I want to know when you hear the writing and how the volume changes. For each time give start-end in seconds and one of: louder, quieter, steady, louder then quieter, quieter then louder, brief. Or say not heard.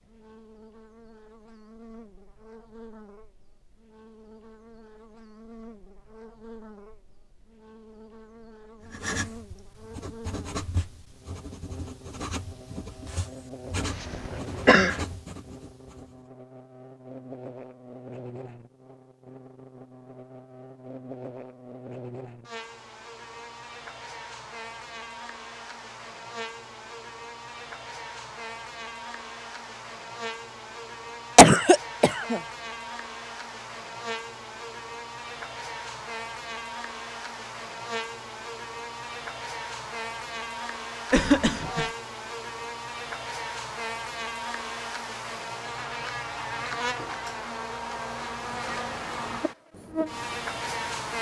8.8-16.2 steady
48.4-51.1 brief.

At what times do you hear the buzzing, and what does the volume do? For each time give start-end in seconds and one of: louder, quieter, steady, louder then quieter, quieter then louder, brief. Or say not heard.
0.0-51.1 louder.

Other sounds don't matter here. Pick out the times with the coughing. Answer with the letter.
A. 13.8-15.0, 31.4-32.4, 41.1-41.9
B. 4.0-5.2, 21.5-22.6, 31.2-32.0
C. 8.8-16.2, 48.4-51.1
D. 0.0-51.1
A.